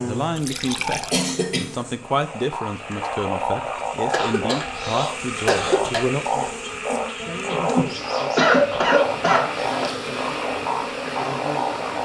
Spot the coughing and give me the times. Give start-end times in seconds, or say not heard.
0.8-1.8, 4.1-6.0, 8.3-9.9.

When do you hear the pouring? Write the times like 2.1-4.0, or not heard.
0.3-1.4.